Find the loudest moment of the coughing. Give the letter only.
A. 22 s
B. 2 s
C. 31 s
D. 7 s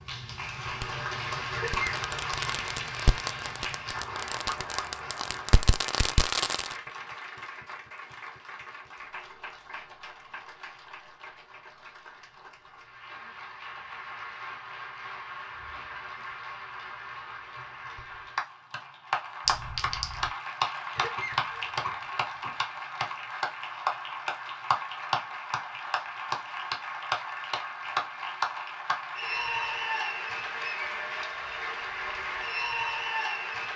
B.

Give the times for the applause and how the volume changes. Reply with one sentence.
You can hear the applause from 0.0 to 33.7 s, getting quieter then louder.